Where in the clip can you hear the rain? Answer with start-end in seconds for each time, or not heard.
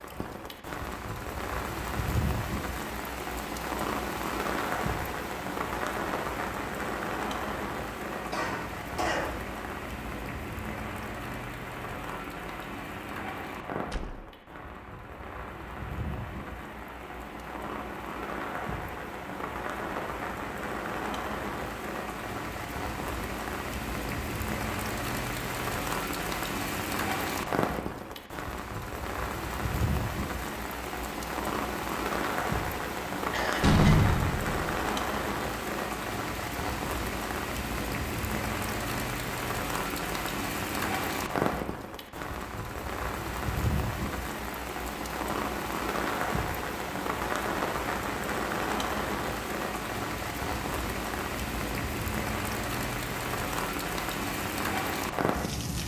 0.0-55.8.